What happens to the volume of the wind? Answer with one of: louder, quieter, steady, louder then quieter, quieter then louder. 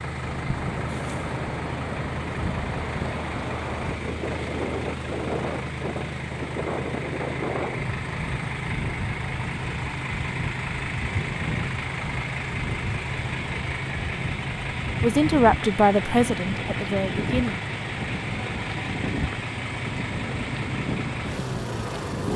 steady.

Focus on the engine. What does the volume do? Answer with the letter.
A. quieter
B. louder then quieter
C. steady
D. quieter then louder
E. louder
C.